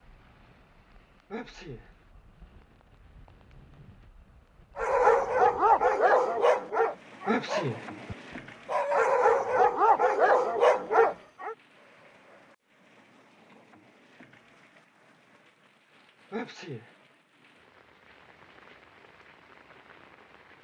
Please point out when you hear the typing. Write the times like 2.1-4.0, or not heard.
not heard.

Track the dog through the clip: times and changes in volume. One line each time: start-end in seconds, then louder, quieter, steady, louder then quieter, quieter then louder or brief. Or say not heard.
4.8-11.6 quieter then louder.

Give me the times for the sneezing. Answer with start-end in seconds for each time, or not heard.
1.3-1.9, 7.2-7.8, 16.3-16.9.